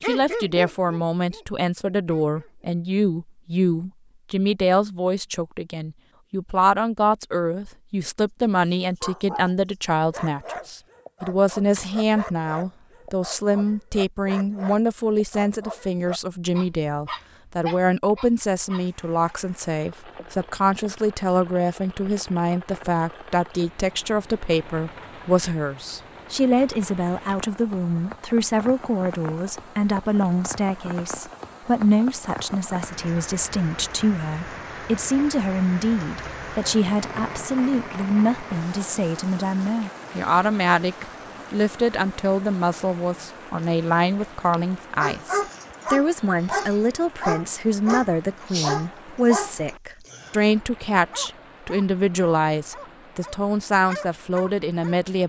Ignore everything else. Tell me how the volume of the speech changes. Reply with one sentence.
The loudness of the speech stays about the same.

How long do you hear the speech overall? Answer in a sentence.
The speech can be heard for 55 seconds in total.